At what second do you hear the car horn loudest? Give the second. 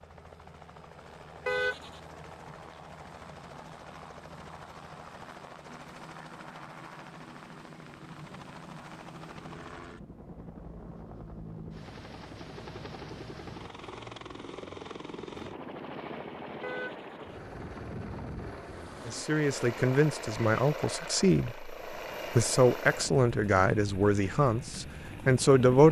2 s.